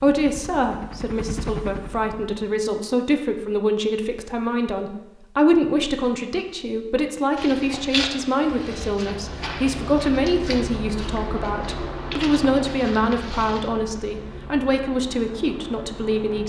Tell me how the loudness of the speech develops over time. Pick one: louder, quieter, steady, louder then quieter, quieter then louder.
steady.